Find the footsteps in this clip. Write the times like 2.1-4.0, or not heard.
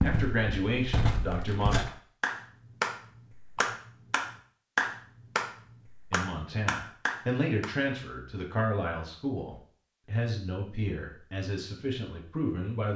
0.0-1.9.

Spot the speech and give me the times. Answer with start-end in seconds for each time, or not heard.
0.0-1.8, 6.1-12.9.